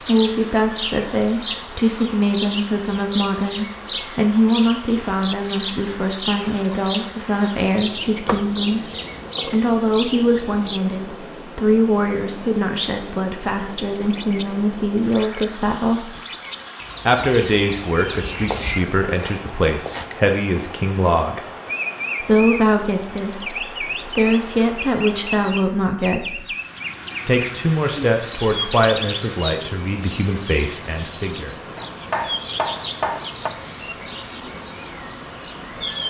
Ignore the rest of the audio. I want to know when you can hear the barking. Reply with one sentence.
You can't hear the barking here.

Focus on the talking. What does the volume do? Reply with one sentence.
The loudness of the talking stays about the same.